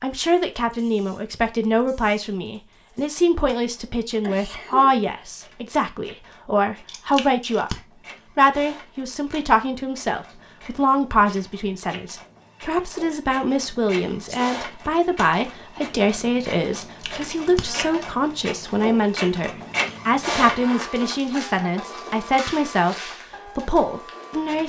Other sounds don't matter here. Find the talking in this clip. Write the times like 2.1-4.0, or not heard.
0.0-7.7, 8.3-24.6.